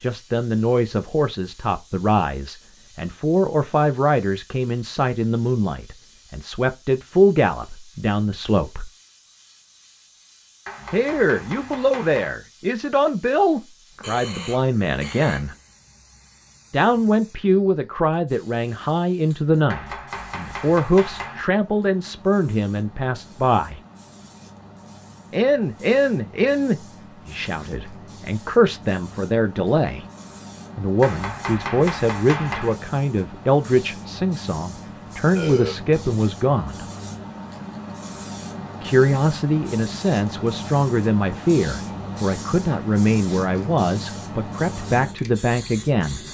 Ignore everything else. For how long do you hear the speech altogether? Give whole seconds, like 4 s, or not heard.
39 s.